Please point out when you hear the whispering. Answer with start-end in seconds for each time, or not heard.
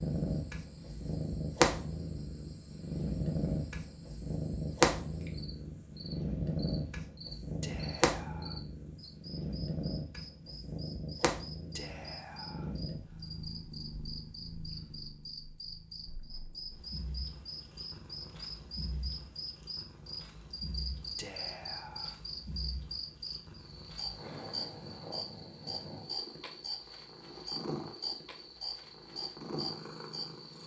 7.6-8.6, 11.8-12.8, 21.1-22.1.